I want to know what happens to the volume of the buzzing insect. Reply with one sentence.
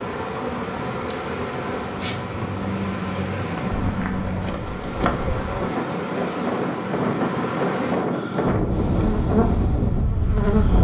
The loudness of the buzzing insect stays about the same.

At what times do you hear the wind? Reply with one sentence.
The wind can be heard from 0.1 to 10.7 s.